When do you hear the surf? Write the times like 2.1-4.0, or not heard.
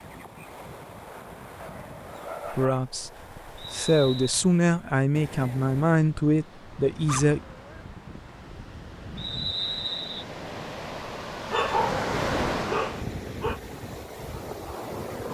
0.0-15.3.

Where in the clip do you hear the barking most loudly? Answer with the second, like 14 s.
12 s.